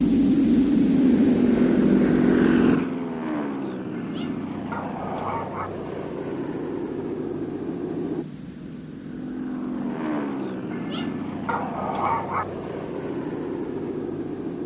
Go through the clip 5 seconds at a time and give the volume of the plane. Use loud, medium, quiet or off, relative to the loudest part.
loud, medium, medium.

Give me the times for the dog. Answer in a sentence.
The dog can be heard from 3.9 to 5.7 s and from 10.7 to 12.4 s.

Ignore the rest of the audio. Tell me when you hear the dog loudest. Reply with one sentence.
The volume of the dog peaks at 12 seconds.